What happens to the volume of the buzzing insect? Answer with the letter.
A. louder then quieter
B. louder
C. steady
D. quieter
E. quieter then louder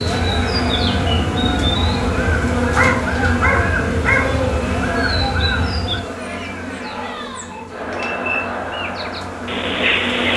D.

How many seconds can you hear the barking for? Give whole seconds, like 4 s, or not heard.
2 s.